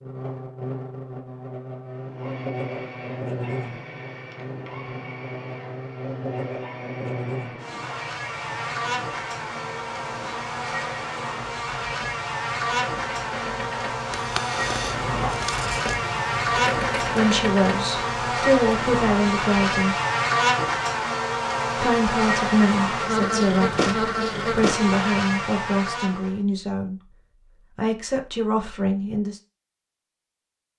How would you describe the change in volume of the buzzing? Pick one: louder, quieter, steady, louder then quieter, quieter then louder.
louder.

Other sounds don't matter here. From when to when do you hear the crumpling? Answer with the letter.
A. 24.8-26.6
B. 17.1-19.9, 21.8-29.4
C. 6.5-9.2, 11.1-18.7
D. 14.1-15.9
D.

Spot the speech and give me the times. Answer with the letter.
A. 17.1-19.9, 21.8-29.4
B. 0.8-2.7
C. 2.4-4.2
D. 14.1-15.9
A.